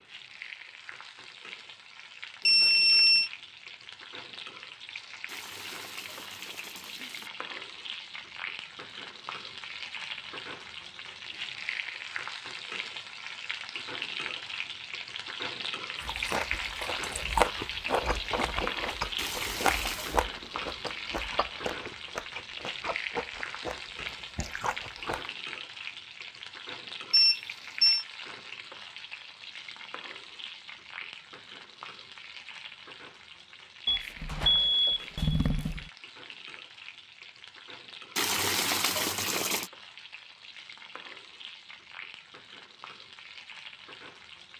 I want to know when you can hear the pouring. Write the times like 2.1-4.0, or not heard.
5.2-7.3, 19.1-20.2, 38.1-39.7.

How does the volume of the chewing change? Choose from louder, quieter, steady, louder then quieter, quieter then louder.
quieter.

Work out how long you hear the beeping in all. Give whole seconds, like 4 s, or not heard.
4 s.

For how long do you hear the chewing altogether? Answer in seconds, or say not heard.
9 s.